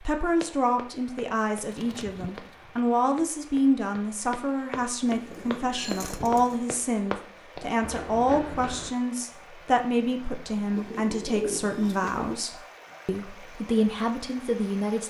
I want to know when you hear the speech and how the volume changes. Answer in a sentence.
The speech can be heard from 0.0 to 15.0 s, at a steady volume.